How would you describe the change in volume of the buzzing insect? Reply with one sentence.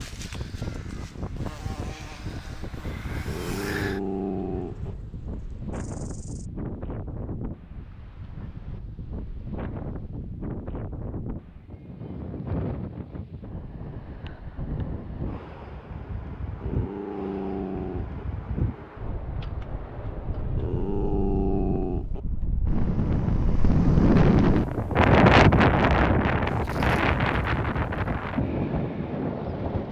The volume of the buzzing insect goes up, then down.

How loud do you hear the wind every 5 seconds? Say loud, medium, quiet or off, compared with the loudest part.
quiet, quiet, quiet, quiet, loud, loud.